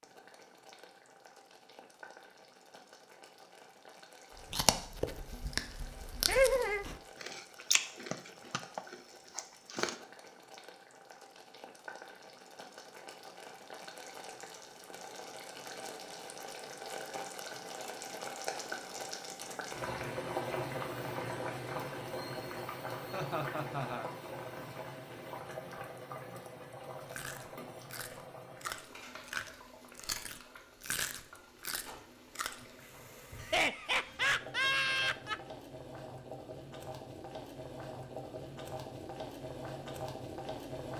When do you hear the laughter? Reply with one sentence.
The laughter can be heard from 6.2 to 6.8 s, from 23.1 to 24.1 s and from 33.4 to 35.4 s.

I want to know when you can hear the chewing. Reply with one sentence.
You can hear the chewing from 4.3 to 9.9 s and from 27.1 to 32.6 s.